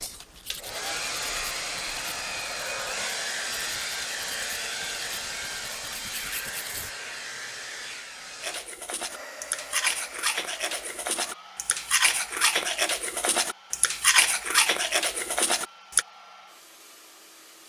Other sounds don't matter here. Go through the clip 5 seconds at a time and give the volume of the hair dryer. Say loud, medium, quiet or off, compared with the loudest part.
loud, medium, quiet, quiet.